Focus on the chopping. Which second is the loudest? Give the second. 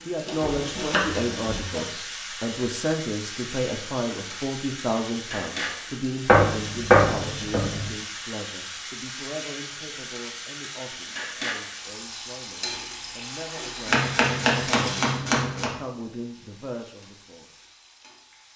7 s.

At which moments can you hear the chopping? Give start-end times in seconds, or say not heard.
0.2-1.9, 6.2-7.9, 13.8-15.7.